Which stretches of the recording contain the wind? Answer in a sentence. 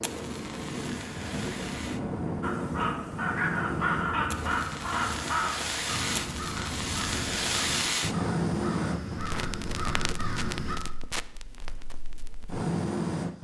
You can hear the wind from 0.0 to 7.8 s.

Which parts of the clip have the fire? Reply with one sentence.
The fire can be heard from 0.0 to 13.3 s.